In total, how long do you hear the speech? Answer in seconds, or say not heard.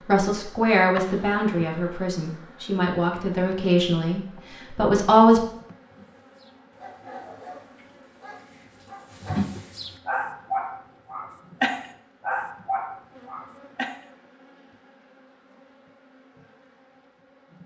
5 s.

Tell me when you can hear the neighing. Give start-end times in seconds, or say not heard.
not heard.